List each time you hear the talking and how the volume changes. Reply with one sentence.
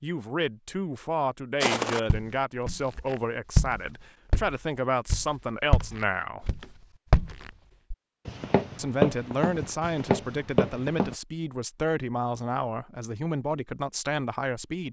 The talking can be heard from 0.0 to 6.5 s, at a steady volume; and from 8.8 to 14.8 s, at a steady volume.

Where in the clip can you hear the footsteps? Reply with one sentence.
The footsteps can be heard from 1.6 to 11.2 s.